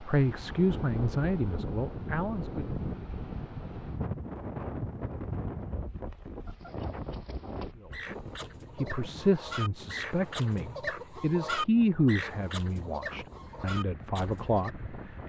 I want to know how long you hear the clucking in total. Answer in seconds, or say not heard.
8 s.